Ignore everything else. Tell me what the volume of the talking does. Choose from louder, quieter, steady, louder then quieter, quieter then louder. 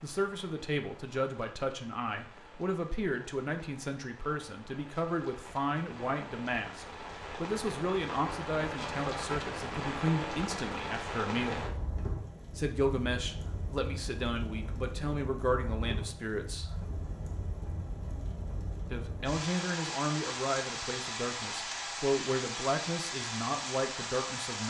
steady.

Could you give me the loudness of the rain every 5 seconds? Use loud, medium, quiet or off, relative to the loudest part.
quiet, loud, loud, medium, loud.